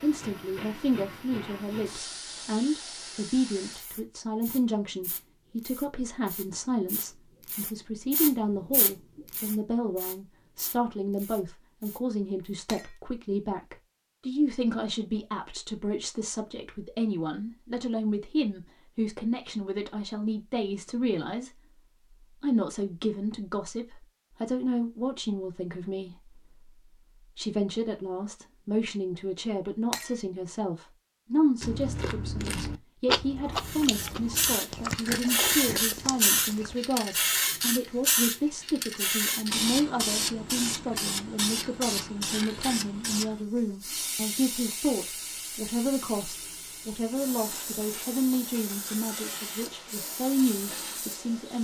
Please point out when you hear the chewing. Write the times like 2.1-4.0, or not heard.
31.6-36.8.